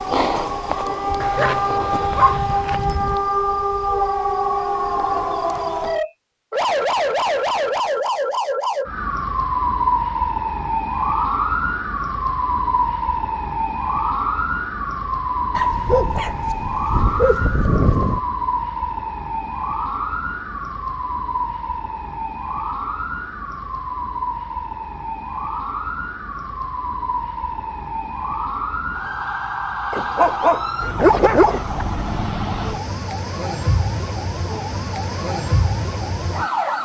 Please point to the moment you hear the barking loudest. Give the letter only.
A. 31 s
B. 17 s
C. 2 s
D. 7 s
A.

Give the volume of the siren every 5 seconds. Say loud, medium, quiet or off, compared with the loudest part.
loud, loud, loud, loud, medium, medium, medium, loud.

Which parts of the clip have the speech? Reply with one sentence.
The speech can't be heard in this clip.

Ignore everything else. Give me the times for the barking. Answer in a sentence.
You can hear the barking from 1.2 to 3.1 s, from 15.6 to 18.2 s and from 29.9 to 31.9 s.